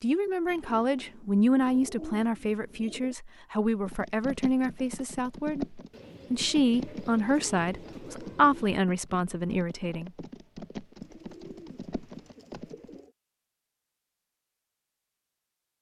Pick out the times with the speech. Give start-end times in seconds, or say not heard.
0.0-10.1.